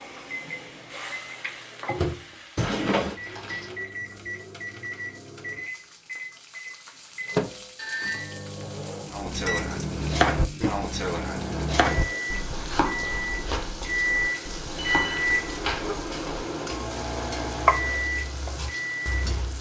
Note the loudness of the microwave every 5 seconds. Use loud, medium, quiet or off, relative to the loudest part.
medium, loud, loud, loud.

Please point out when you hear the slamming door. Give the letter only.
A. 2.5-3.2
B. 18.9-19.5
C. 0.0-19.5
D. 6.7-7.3
A.